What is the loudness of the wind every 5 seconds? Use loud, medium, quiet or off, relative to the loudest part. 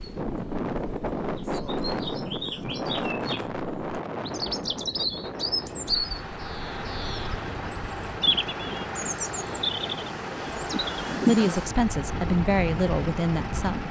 loud, medium, loud.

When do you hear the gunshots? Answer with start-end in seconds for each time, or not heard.
not heard.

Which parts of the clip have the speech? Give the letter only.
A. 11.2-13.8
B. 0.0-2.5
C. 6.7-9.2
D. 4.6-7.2
A.